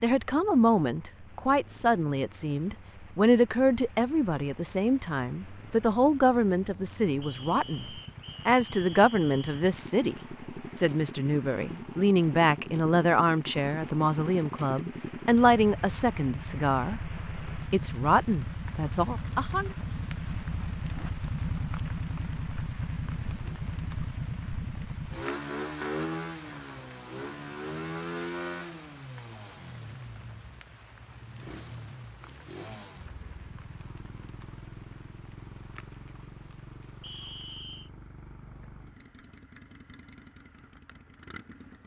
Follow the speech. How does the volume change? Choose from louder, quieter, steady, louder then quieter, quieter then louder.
steady.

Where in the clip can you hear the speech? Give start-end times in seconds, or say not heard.
0.0-19.7.